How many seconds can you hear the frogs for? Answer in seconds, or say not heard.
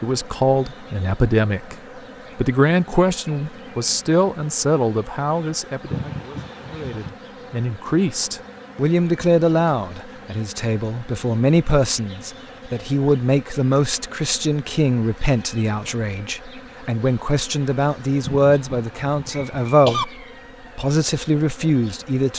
not heard.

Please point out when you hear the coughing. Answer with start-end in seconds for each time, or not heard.
5.8-7.1, 18.2-20.1.